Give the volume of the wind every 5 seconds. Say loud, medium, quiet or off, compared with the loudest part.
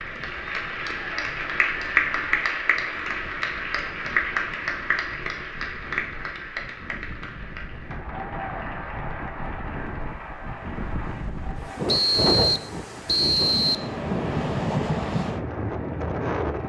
quiet, quiet, loud, loud.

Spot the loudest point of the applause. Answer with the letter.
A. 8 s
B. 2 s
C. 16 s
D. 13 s
B.